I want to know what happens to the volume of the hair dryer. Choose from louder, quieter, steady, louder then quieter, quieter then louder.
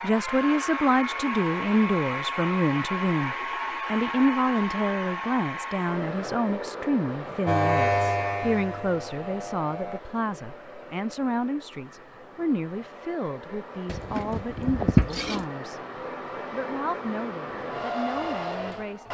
quieter then louder.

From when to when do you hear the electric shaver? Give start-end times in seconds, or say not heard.
7.5-10.0.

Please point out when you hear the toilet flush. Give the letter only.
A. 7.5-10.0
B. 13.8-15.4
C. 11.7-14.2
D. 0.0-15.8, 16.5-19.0
B.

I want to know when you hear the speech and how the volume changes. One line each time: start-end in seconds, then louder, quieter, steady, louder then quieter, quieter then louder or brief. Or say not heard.
0.0-15.8 quieter
16.5-19.0 brief.